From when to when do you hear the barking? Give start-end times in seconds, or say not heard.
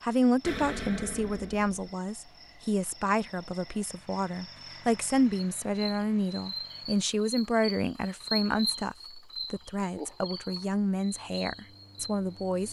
not heard.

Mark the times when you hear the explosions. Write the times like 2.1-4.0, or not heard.
0.4-1.8.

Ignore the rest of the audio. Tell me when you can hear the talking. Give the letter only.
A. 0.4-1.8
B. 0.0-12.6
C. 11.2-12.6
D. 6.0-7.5
B.